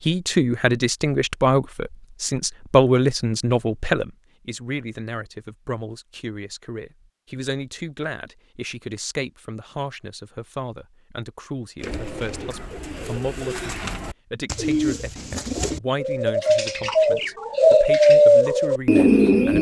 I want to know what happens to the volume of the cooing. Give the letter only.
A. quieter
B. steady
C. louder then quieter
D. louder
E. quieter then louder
D.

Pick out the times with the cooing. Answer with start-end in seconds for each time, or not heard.
11.8-19.5.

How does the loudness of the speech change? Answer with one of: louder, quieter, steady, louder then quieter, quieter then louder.
quieter.